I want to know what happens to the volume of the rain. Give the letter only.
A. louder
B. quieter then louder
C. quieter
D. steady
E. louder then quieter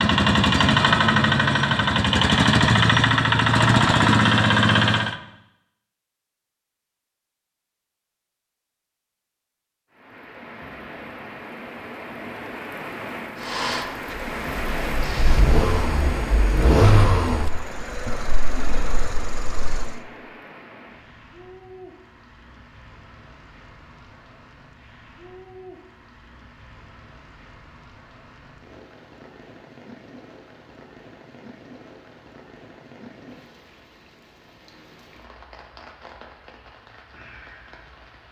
C.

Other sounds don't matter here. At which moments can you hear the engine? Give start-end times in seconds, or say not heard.
0.0-5.2, 13.3-20.0.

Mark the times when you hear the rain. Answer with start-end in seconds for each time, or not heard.
9.9-38.2.